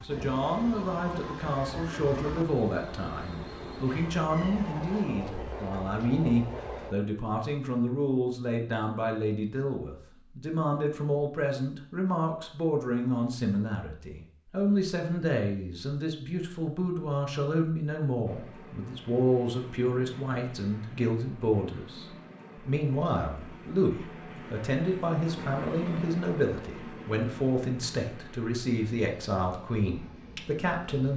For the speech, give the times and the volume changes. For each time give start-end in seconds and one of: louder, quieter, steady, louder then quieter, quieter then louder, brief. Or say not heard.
0.0-31.1 steady.